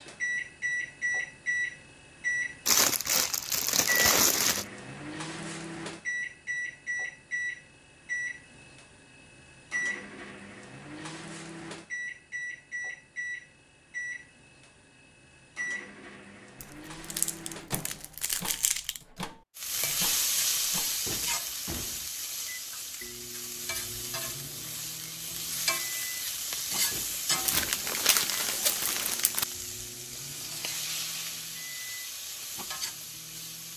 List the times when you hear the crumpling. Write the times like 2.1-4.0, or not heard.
2.6-4.7, 16.6-19.0, 27.4-29.4.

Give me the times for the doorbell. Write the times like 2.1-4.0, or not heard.
not heard.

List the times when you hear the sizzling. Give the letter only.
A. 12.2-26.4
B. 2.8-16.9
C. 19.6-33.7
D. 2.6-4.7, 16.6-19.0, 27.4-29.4
C.